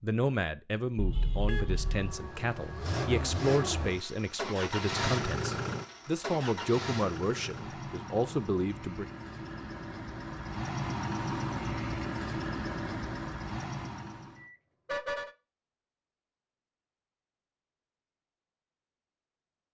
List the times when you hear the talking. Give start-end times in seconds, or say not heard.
0.0-9.1.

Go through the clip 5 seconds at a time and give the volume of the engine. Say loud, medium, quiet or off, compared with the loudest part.
loud, loud, loud, off.